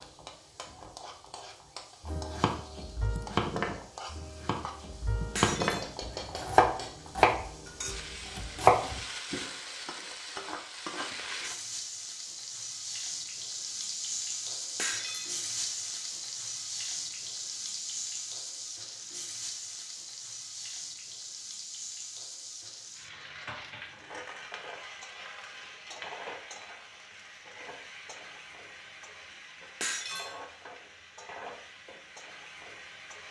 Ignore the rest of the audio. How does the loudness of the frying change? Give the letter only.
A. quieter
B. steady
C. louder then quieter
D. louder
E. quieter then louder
C.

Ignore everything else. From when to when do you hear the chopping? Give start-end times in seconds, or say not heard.
2.0-9.0.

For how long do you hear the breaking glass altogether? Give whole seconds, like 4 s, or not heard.
2 s.